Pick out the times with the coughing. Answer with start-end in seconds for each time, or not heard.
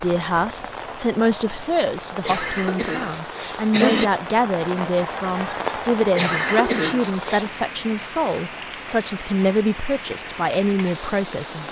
2.2-4.1, 6.2-7.5.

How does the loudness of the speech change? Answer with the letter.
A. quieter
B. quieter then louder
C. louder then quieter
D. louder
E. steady
E.